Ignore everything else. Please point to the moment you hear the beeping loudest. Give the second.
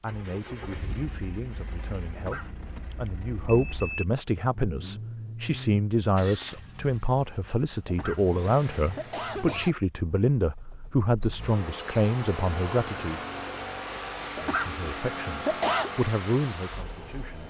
12 s.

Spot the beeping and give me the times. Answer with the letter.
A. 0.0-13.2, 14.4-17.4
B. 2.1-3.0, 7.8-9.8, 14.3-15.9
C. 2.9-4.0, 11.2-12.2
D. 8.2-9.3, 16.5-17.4
C.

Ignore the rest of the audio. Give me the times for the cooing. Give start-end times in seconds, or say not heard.
not heard.